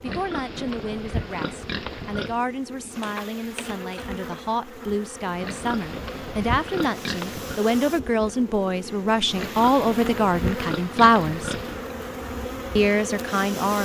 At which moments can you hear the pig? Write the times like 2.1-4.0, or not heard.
0.1-2.5, 5.4-7.5, 9.3-11.9.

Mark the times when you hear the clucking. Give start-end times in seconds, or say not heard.
3.0-4.5.